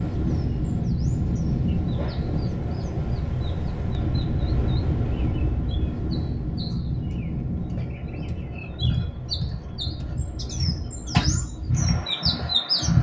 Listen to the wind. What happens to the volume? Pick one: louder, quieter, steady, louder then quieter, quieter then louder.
quieter.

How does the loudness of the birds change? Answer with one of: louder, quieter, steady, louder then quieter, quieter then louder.
louder.